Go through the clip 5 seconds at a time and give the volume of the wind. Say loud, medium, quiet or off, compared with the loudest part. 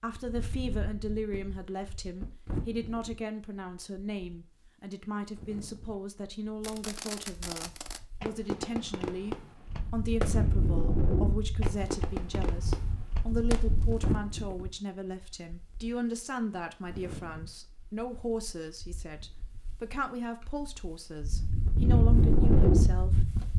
quiet, quiet, medium, quiet, loud.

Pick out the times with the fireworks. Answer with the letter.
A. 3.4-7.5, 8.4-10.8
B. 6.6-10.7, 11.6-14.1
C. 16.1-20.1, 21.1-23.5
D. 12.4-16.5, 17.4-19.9
B.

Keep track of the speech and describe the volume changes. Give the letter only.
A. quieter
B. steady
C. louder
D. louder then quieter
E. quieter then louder
B.